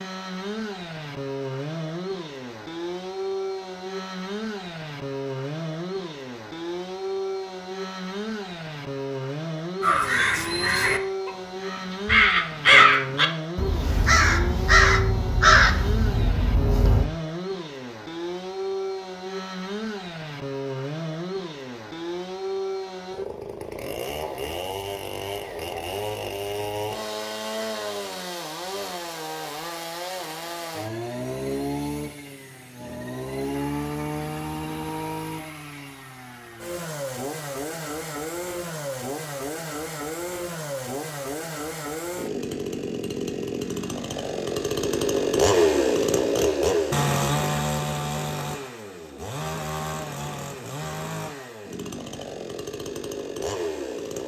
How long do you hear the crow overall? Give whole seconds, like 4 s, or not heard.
7 s.